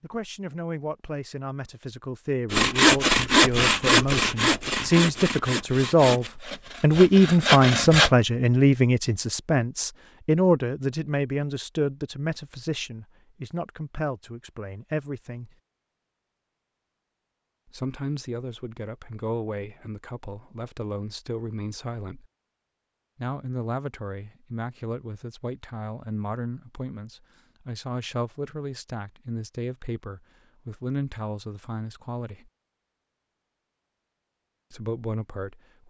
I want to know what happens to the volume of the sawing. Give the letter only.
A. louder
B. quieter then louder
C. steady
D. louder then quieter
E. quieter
B.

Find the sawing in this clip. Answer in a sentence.
The sawing can be heard from 2.5 to 8.1 s.